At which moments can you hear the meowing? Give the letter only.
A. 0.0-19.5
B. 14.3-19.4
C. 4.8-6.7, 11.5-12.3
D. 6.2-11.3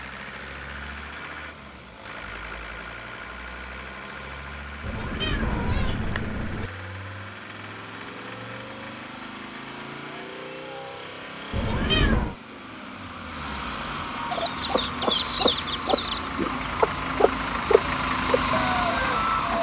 C.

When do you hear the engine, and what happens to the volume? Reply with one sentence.
You can hear the engine from 0.0 to 19.5 s, getting louder.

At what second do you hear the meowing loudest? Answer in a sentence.
The volume of the meowing peaks at 12 seconds.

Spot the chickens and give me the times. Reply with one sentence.
You can hear the chickens from 14.3 to 19.4 s.